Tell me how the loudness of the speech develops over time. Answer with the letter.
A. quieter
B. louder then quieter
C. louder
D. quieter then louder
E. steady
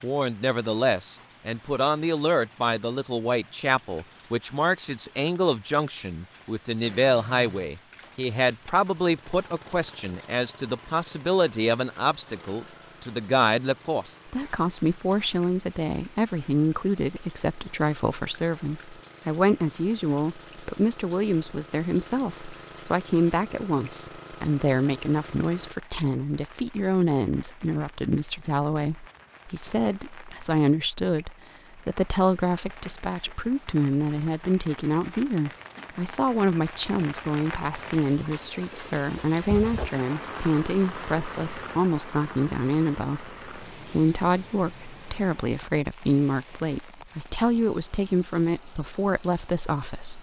E.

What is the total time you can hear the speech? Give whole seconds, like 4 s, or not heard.
50 s.